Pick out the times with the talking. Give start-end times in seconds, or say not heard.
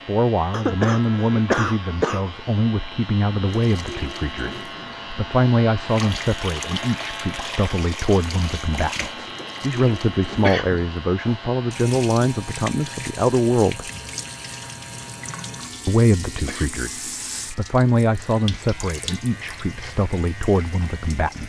0.1-13.9, 15.8-21.4.